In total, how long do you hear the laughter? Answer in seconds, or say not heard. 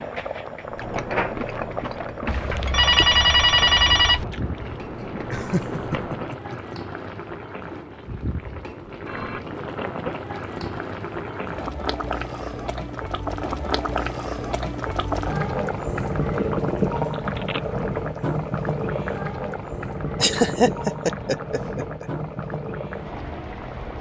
3 s.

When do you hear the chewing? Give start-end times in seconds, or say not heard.
0.7-6.3.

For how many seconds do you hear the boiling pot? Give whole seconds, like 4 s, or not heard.
24 s.